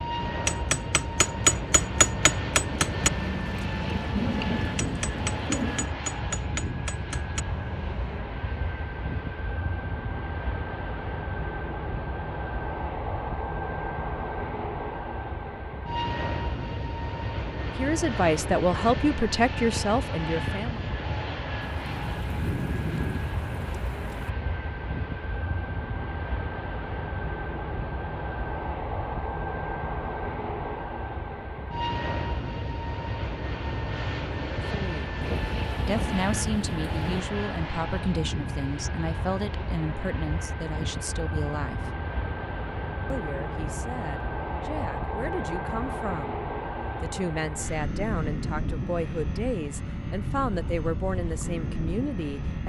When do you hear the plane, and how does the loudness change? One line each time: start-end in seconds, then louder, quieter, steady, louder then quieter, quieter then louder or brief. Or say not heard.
0.0-52.6 steady.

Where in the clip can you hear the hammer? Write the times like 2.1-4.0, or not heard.
0.2-8.2.